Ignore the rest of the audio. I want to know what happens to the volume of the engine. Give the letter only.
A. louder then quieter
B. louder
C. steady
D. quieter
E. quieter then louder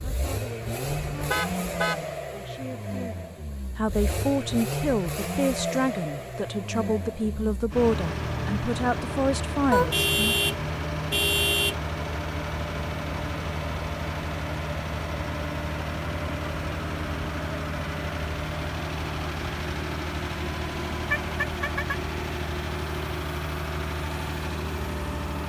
C.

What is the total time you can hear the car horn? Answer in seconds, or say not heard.
4 s.